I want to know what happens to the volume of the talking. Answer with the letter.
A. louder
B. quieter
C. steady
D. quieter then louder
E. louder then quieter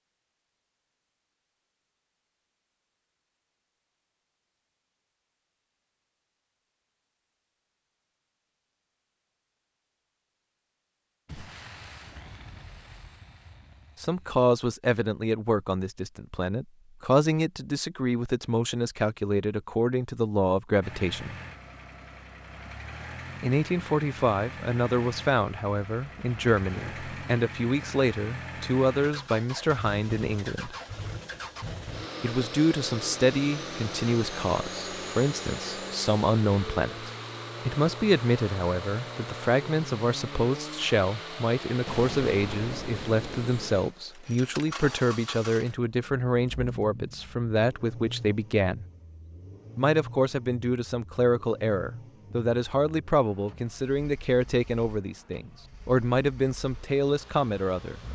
C.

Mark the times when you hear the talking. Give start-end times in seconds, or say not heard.
13.9-21.4, 23.4-30.8, 32.2-48.9, 49.8-58.0.